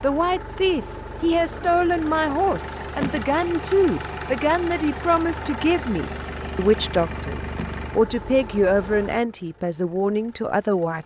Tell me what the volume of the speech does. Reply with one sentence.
The loudness of the speech stays about the same.